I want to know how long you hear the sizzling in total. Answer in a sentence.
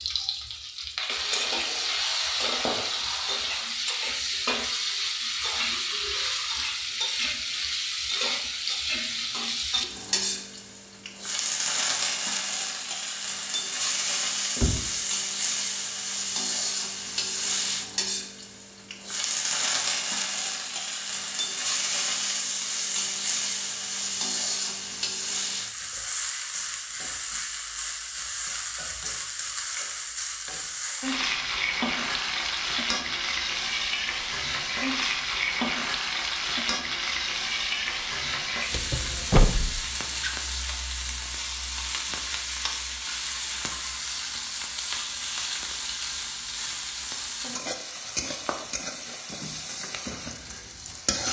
The sizzling can be heard for 51 seconds in total.